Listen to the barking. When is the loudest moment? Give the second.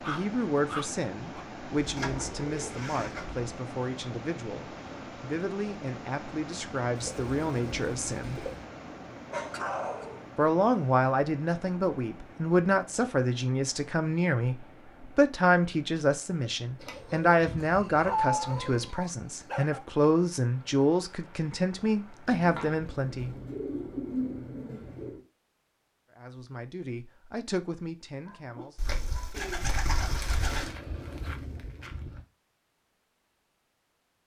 18 s.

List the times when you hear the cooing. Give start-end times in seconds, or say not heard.
1.8-3.4, 7.0-8.7, 16.8-18.9, 22.2-25.2, 28.8-30.7.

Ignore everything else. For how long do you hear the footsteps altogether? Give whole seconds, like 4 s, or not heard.
2 s.